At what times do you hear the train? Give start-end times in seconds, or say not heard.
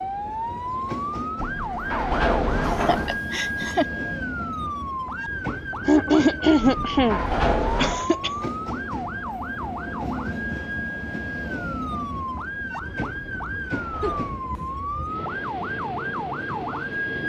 0.0-17.2.